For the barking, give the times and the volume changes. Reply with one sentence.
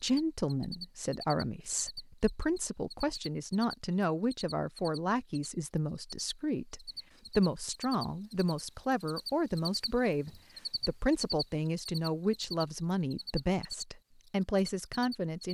You can't hear the barking here.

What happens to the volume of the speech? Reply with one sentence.
The loudness of the speech stays about the same.